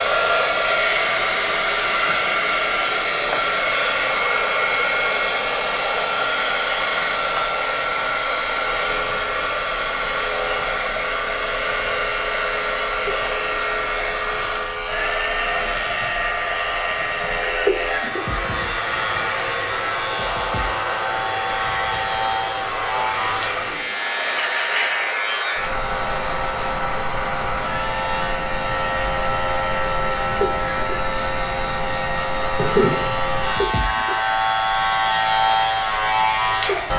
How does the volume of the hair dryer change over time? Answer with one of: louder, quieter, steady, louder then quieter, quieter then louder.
quieter.